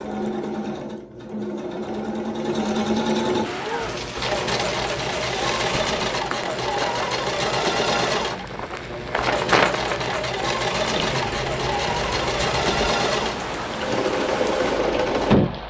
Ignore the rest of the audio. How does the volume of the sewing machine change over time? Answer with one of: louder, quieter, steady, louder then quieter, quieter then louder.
steady.